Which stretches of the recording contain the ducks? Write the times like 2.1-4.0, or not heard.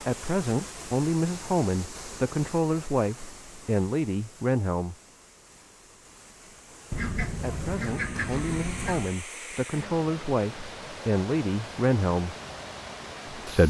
6.9-9.2.